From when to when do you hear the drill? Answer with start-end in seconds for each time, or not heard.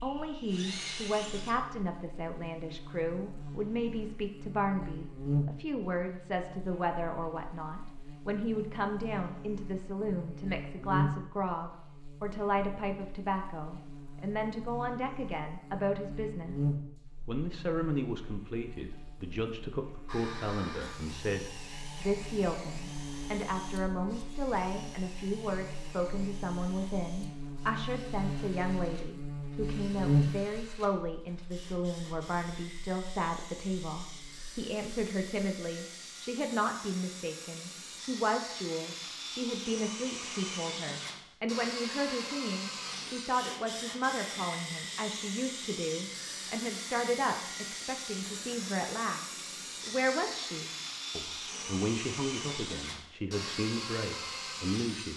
0.0-1.6, 20.1-55.1.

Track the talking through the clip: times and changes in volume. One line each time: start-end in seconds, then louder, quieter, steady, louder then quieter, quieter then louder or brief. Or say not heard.
0.0-55.1 steady.